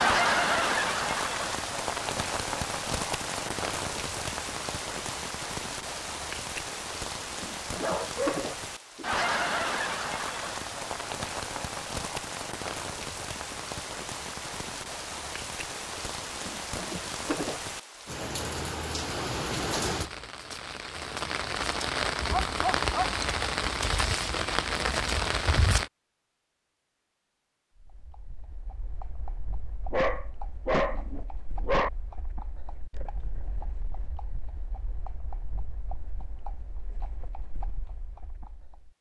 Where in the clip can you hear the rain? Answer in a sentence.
You can hear the rain from 0.0 to 25.9 s.